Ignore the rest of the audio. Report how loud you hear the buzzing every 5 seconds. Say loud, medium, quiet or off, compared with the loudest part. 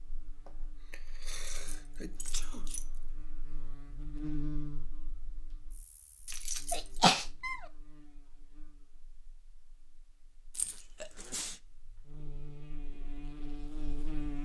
loud, quiet, loud.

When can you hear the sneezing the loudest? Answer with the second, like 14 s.
7 s.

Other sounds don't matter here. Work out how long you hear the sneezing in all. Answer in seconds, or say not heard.
4 s.